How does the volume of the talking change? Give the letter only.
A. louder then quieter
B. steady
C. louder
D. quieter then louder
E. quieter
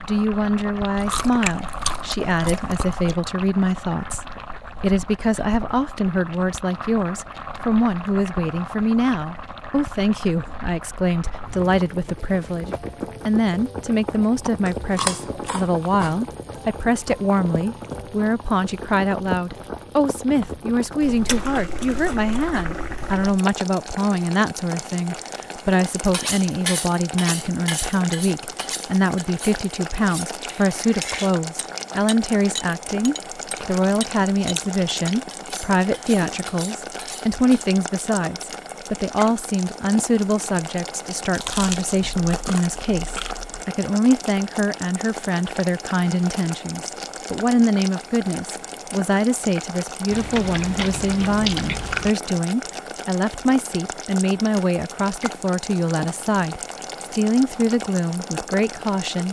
B.